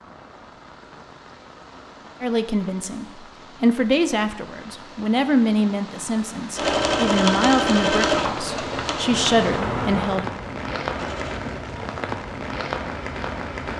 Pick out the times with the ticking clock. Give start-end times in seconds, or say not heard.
not heard.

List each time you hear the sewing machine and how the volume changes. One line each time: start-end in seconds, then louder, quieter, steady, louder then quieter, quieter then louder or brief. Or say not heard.
6.5-11.4 quieter.